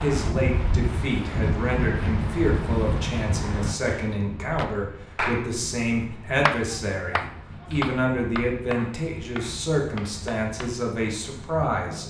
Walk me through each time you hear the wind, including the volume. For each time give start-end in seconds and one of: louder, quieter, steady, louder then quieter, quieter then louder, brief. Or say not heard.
0.0-12.0 quieter.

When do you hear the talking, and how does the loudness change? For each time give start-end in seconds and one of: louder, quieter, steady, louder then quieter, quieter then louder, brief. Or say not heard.
0.0-12.0 steady.